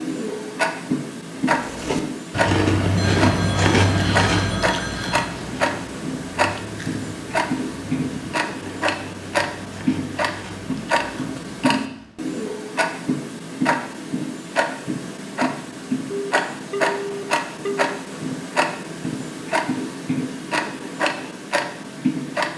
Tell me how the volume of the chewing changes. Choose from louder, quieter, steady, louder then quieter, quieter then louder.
quieter.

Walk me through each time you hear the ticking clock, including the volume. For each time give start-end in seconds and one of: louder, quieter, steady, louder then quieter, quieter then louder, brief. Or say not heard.
0.0-22.5 steady.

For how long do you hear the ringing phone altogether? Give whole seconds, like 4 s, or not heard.
4 s.